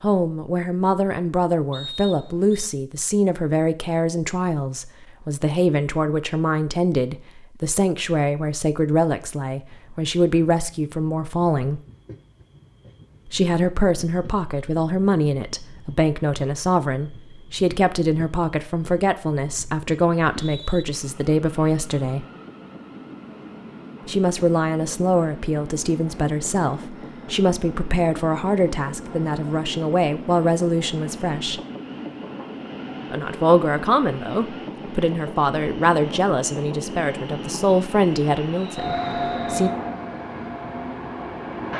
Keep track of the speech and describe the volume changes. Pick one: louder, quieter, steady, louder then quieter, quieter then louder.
steady.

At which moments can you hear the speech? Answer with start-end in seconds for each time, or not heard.
0.0-11.8, 13.2-22.2, 24.1-31.6, 33.1-39.7.